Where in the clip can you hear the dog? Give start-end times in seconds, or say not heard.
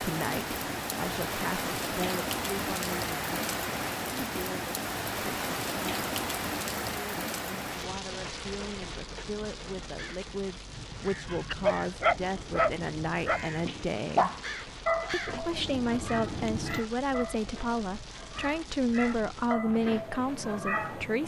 11.2-21.1.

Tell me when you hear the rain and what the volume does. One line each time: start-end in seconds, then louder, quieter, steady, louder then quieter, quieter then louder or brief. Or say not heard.
0.0-21.2 quieter.